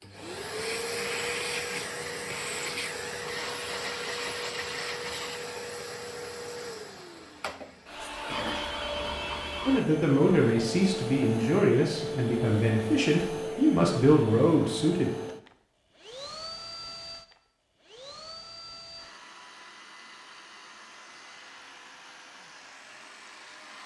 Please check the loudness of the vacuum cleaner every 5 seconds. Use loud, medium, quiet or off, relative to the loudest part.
loud, loud, loud, medium, quiet.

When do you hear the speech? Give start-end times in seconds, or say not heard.
9.7-15.1.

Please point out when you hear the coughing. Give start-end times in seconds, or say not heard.
not heard.